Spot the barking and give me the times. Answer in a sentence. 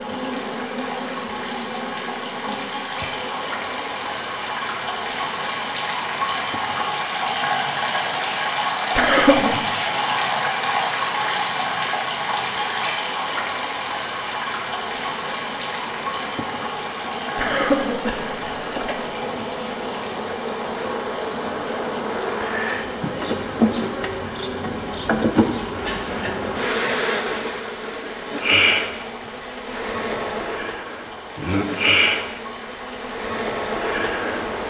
You can't hear the barking here.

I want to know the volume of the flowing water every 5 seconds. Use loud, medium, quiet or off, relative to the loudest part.
medium, loud, loud, medium, quiet, quiet, quiet.